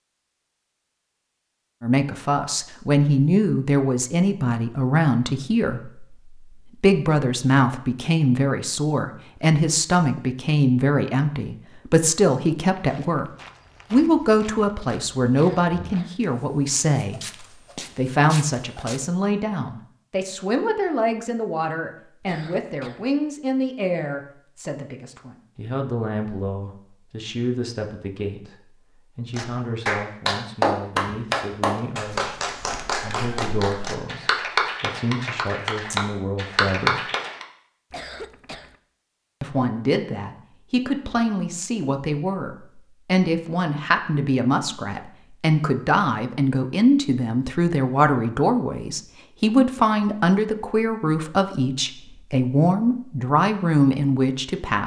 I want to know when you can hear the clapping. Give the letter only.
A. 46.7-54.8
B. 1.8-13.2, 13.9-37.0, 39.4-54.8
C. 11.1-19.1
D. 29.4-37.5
D.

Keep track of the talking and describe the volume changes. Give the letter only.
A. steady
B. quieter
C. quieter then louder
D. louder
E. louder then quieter
C.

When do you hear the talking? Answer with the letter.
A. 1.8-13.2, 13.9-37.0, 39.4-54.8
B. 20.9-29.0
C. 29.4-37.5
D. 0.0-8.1
A.